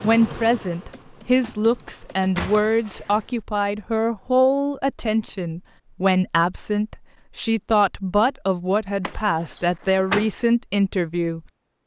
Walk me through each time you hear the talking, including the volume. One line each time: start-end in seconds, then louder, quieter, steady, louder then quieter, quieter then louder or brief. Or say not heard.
0.0-11.4 steady.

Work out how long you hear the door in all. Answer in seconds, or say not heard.
3 s.